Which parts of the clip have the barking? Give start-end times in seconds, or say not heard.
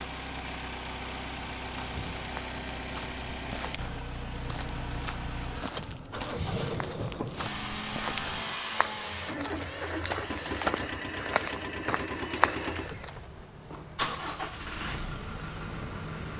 not heard.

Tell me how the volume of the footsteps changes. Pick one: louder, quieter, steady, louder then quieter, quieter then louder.
louder.